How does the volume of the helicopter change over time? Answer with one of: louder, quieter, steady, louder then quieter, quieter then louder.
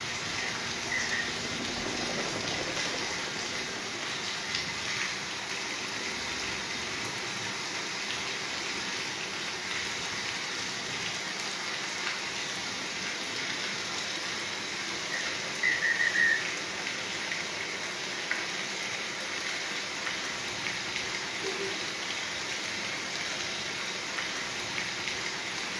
louder then quieter.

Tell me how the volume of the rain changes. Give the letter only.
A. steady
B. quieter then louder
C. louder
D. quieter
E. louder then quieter
A.